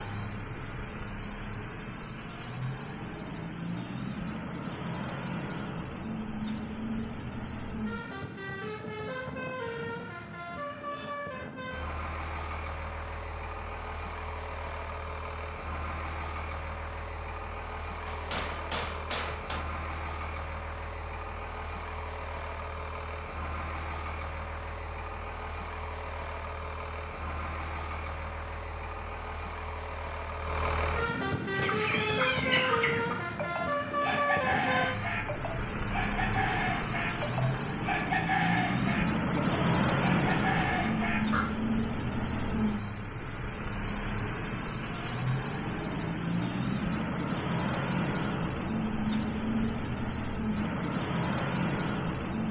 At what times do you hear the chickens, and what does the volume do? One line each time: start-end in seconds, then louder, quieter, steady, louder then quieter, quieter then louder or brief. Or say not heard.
31.5-41.5 steady.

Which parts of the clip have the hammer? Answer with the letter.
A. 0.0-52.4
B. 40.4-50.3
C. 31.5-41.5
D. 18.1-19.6
D.